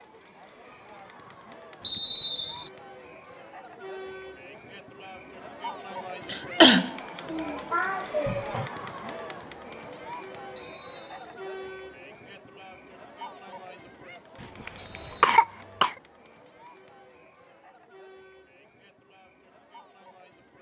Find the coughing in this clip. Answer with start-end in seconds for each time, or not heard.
6.3-8.7, 14.4-15.9.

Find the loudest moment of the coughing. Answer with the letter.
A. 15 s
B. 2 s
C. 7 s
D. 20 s
C.